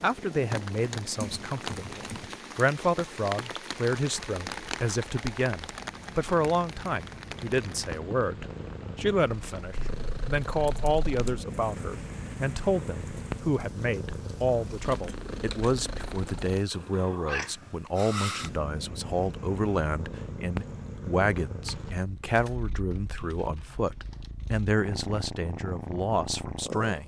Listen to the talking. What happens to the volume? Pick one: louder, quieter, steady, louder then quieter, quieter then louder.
steady.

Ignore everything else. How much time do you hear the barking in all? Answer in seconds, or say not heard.
not heard.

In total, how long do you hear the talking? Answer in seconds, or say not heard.
27 s.